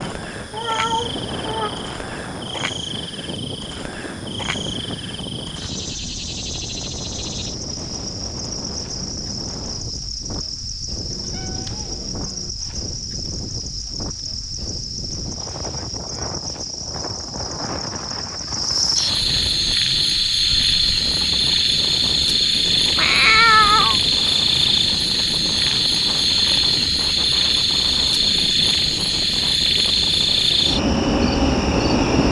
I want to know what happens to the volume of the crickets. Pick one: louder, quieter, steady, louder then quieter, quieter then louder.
louder.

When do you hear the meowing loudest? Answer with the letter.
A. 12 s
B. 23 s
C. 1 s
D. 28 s
B.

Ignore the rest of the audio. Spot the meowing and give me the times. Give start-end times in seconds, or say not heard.
0.5-1.7, 11.1-12.5, 22.9-23.9.